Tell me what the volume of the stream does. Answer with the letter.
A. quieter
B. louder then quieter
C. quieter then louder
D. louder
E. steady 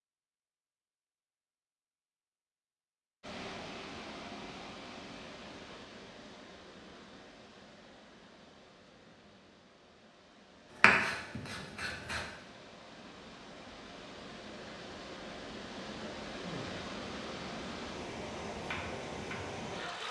C.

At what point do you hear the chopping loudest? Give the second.
11 s.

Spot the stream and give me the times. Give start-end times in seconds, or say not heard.
3.2-20.0.